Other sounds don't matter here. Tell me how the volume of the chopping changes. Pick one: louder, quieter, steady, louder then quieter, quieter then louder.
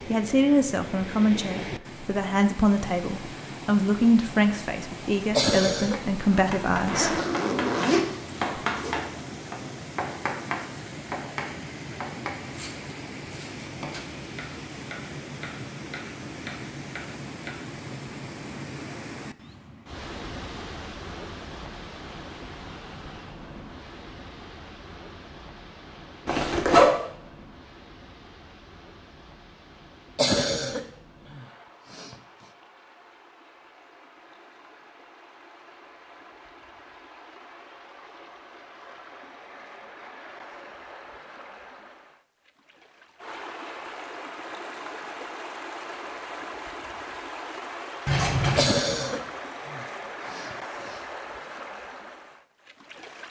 quieter.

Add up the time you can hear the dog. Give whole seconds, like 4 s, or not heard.
not heard.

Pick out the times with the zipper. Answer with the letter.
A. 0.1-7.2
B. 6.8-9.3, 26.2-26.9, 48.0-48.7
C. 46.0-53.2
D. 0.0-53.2
B.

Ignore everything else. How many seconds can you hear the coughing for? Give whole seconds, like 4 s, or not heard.
5 s.